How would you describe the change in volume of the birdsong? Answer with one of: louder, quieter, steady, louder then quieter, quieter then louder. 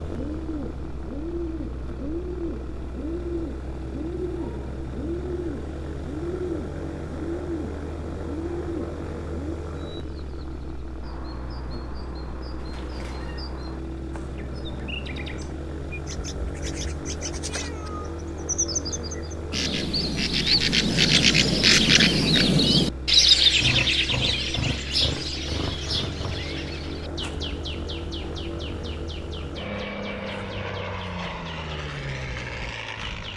louder then quieter.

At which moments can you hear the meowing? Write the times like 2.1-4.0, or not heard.
12.6-13.4, 17.4-18.2.